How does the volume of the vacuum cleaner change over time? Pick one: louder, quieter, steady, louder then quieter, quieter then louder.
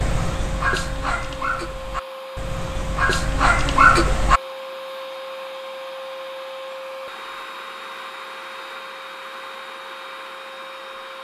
steady.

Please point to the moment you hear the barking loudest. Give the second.
4 s.